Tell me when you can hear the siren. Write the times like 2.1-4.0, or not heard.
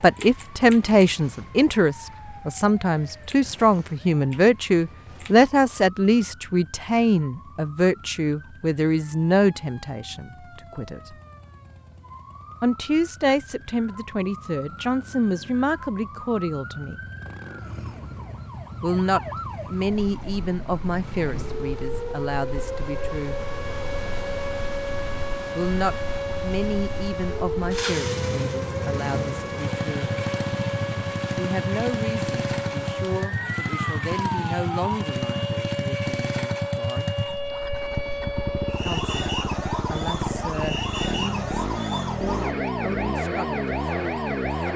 0.0-44.7.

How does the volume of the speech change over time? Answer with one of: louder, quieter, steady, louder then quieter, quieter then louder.
quieter.